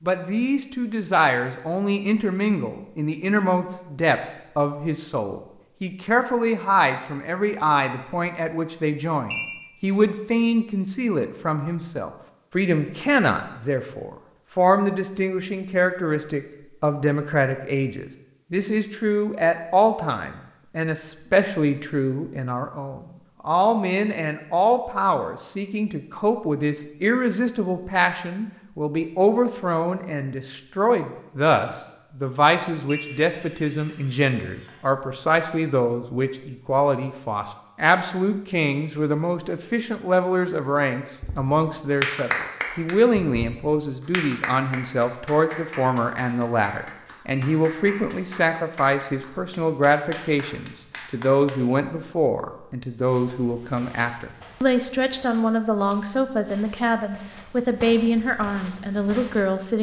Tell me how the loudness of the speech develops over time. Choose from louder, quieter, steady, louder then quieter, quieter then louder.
steady.